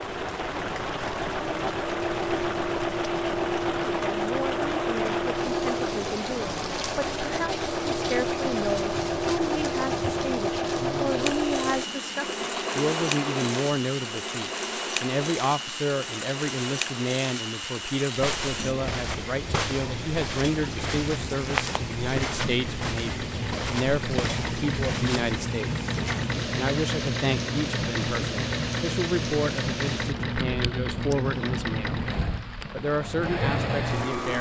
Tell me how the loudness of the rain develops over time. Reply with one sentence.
The volume of the rain stays about the same.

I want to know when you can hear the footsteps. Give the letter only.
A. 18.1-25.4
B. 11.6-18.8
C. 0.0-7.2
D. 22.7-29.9
A.